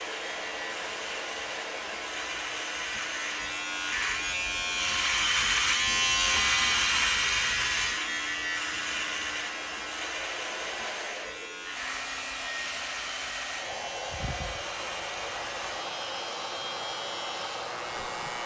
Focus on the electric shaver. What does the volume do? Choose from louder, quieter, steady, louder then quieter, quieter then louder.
louder then quieter.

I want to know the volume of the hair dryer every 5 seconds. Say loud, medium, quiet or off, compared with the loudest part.
loud, medium, loud, loud.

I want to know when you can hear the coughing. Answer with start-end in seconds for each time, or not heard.
not heard.